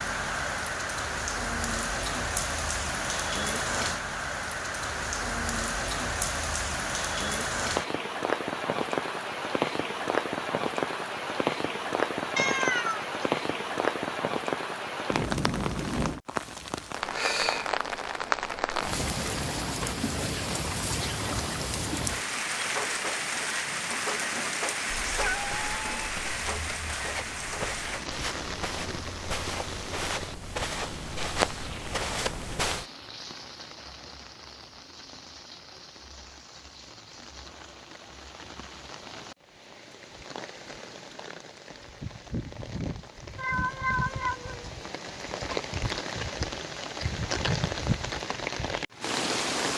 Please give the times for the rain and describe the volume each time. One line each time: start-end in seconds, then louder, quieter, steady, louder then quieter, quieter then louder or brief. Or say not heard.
0.0-49.7 quieter then louder.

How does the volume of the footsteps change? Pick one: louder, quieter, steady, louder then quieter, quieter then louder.
louder.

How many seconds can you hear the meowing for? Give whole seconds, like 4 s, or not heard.
3 s.